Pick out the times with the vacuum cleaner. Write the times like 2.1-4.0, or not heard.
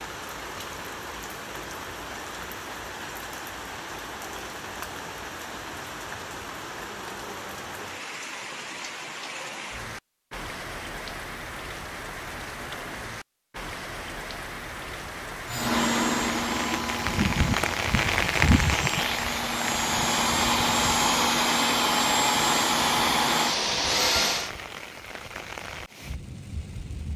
15.4-24.5.